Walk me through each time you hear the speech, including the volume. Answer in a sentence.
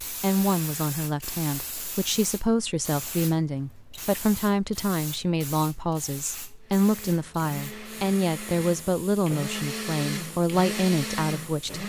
The speech can be heard from 0.1 to 11.8 s, at a steady volume.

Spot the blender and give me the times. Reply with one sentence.
The blender can be heard from 6.6 to 11.8 s.